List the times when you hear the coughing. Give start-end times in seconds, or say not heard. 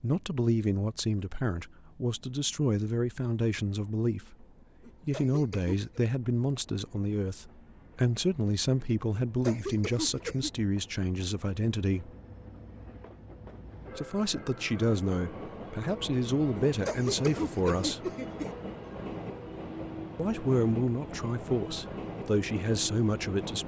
4.8-5.9, 9.2-10.5, 16.6-18.5.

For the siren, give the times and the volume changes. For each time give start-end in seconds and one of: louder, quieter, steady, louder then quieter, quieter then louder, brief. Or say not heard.
not heard.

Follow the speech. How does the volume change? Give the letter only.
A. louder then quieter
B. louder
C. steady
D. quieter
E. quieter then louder
C.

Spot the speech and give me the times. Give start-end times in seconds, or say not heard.
0.0-4.5, 5.0-12.1, 13.9-18.1, 20.1-23.6.